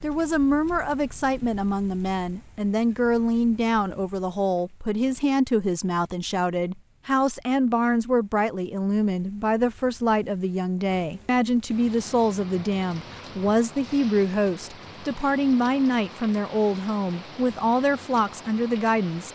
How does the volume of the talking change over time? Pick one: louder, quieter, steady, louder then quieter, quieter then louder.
steady.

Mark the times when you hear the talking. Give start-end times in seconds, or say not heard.
0.0-19.3.